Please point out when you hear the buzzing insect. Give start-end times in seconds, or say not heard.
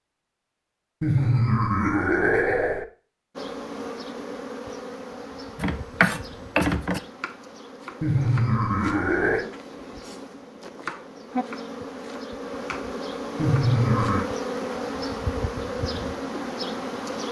3.4-17.2.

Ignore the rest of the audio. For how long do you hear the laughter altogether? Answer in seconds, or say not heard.
4 s.